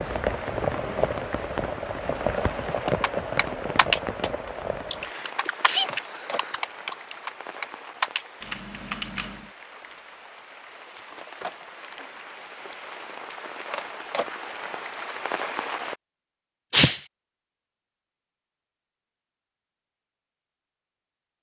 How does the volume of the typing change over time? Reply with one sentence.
The volume of the typing goes down, then up.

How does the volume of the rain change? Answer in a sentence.
The volume of the rain goes down, then up.